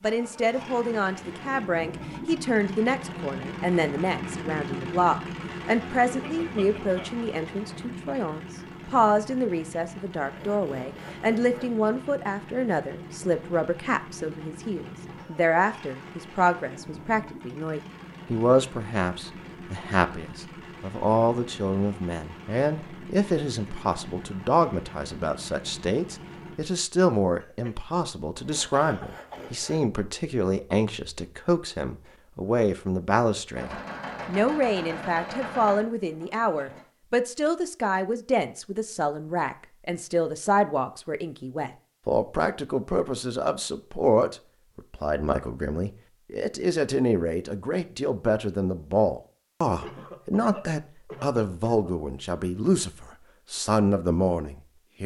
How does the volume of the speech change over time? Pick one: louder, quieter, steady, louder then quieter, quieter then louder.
steady.